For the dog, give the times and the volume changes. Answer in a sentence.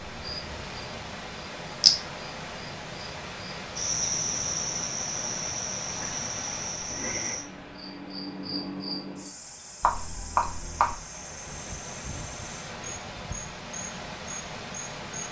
The dog can't be heard in this clip.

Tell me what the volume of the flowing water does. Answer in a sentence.
The volume of the flowing water goes down, then up.